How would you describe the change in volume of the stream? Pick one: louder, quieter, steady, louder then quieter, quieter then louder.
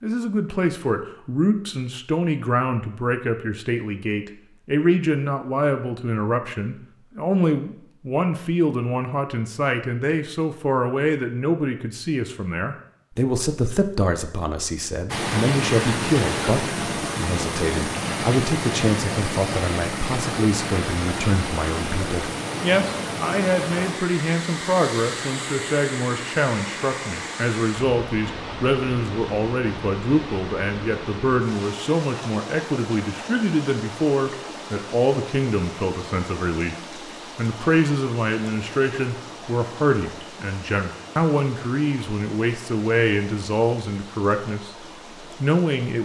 quieter.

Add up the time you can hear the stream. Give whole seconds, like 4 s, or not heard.
31 s.